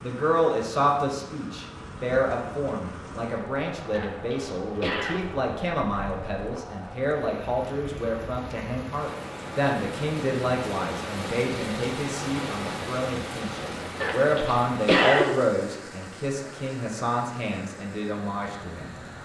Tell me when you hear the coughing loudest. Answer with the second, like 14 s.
15 s.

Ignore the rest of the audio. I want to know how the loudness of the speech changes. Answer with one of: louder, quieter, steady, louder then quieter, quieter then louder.
steady.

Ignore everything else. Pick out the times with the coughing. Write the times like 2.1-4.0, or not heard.
3.9-5.2, 14.0-15.2.